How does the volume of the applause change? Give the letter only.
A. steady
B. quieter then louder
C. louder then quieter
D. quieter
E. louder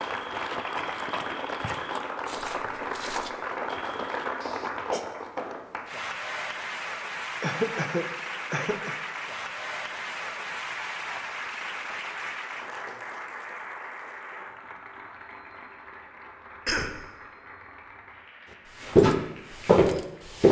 D.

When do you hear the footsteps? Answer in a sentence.
You can hear the footsteps from 0.0 to 4.5 s and from 18.8 to 20.4 s.